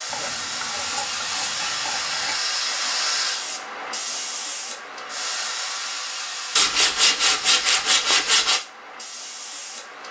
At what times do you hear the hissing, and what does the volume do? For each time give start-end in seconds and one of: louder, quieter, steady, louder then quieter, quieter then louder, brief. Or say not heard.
0.0-10.0 quieter.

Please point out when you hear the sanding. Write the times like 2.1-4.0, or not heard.
0.1-2.4, 6.5-8.6.